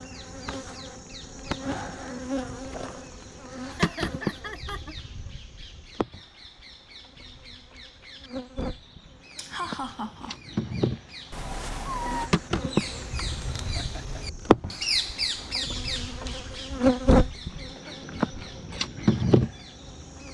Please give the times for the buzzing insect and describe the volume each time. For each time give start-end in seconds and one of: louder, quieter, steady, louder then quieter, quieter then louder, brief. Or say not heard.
0.0-20.2 quieter then louder.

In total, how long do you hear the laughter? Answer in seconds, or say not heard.
3 s.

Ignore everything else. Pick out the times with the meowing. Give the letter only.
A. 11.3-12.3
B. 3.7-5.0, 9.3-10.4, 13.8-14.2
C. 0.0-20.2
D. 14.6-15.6
A.